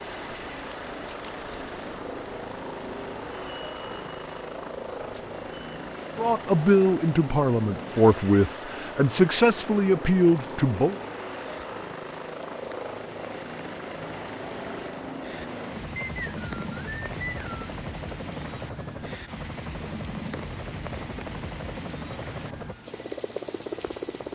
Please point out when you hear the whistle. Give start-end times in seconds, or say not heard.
15.9-17.8.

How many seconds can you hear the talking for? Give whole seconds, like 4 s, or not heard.
5 s.